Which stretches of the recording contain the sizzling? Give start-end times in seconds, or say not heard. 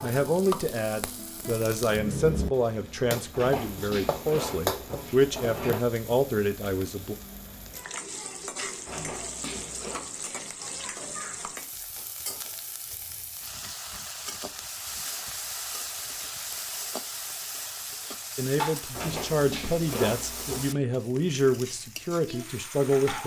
0.0-23.2.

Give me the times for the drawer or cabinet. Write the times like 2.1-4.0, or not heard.
3.3-5.8, 8.8-10.1, 18.9-20.8.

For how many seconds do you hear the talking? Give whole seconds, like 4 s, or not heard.
12 s.